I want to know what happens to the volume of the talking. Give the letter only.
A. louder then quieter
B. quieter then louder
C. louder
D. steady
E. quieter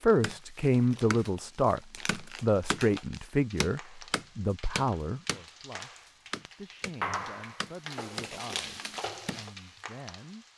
E.